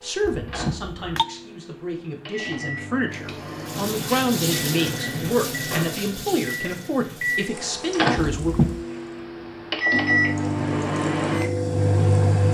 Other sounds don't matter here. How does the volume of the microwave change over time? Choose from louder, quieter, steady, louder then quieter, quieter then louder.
louder.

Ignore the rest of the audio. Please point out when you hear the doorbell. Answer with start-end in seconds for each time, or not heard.
0.2-1.2, 8.3-8.8.